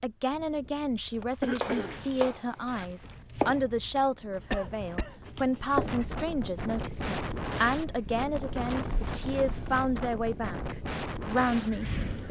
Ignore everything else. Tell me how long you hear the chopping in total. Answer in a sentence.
The chopping can be heard for 5 seconds in total.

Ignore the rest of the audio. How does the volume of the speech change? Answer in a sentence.
The volume of the speech stays about the same.